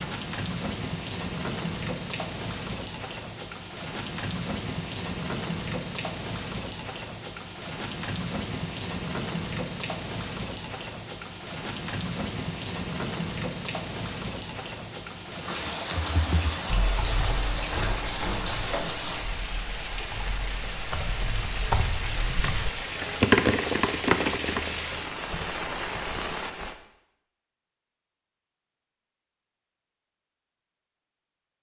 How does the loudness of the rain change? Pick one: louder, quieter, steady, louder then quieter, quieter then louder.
steady.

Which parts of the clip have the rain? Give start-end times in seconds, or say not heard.
0.0-26.8.